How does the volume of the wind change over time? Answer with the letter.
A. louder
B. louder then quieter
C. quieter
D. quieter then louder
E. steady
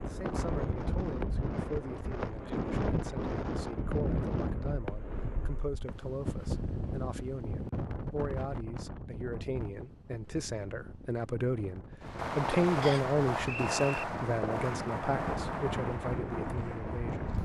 D.